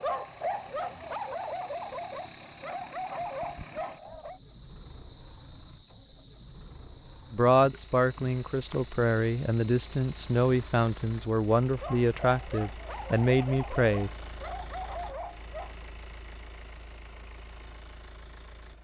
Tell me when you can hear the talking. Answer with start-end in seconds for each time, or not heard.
7.3-14.1.